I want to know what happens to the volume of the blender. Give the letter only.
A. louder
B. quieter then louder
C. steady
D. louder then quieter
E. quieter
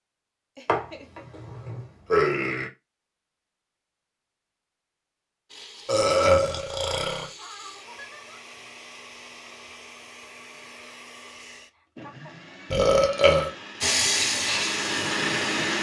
A.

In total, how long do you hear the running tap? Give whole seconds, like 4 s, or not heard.
2 s.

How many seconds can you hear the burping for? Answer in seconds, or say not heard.
4 s.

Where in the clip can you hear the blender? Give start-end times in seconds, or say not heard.
5.5-15.7.